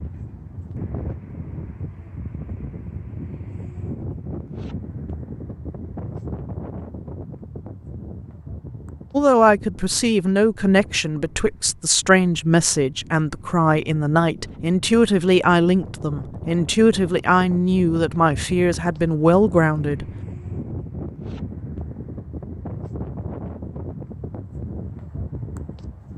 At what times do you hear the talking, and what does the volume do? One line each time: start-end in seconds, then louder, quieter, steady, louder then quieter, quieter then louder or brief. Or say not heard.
9.1-20.1 steady.